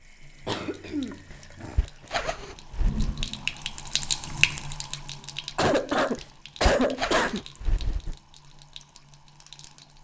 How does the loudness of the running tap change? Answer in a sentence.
The volume of the running tap goes up, then down.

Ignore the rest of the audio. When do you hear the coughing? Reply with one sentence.
The coughing can be heard from 0.5 to 1.8 s and from 5.5 to 7.4 s.